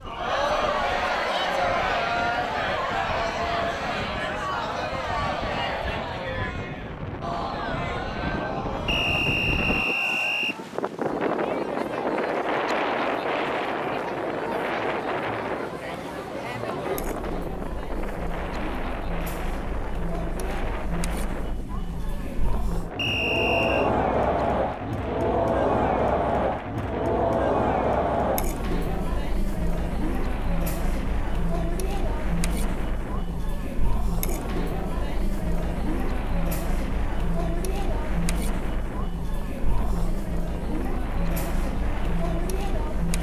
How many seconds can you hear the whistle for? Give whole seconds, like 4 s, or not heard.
3 s.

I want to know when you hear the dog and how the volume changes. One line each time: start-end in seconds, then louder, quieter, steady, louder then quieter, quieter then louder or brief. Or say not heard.
not heard.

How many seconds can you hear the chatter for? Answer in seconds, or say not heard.
43 s.